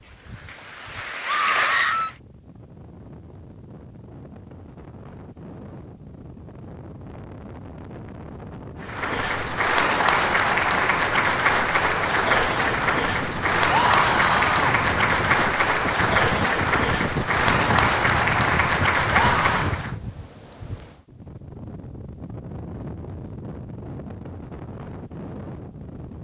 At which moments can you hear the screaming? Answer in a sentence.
The screaming can be heard from 1.2 to 2.1 s, from 13.7 to 14.8 s and from 19.1 to 19.8 s.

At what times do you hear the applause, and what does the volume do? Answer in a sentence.
You can hear the applause briefly from 0.0 to 2.1 s; and from 8.8 to 19.9 s, at a steady volume.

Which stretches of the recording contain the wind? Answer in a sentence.
You can hear the wind from 0.0 to 26.1 s.